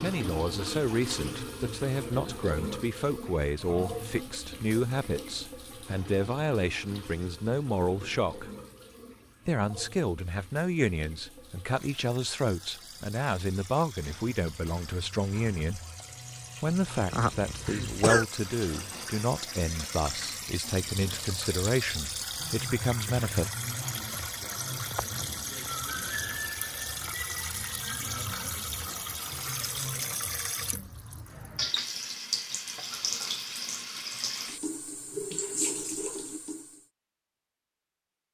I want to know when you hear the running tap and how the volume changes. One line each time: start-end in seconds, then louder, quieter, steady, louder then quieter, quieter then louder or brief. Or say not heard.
0.0-36.9 quieter then louder.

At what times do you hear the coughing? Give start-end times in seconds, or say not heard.
17.1-18.2.